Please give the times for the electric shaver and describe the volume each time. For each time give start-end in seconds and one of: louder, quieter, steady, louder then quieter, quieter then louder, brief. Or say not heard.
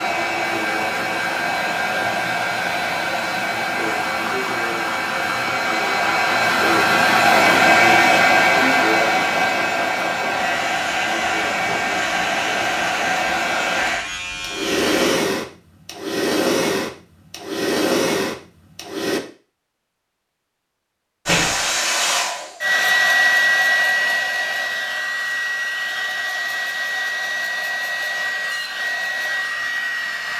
10.3-15.2 steady.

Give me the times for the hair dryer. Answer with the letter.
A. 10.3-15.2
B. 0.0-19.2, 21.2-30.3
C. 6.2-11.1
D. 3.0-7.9
B.